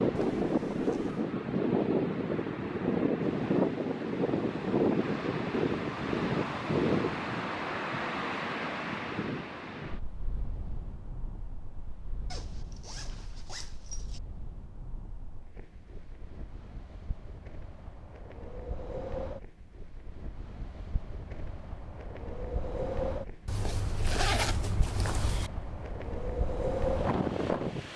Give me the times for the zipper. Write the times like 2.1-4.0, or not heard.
0.1-1.2, 12.3-14.2, 23.4-25.5.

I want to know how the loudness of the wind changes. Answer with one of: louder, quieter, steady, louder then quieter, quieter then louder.
quieter then louder.